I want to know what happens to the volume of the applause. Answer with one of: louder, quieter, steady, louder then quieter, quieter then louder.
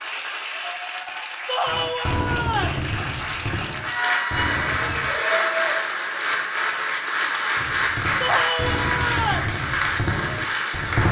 louder.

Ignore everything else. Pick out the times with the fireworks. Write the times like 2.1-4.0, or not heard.
1.6-5.1, 7.5-11.0.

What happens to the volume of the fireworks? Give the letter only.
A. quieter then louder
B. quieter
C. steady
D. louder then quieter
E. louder
A.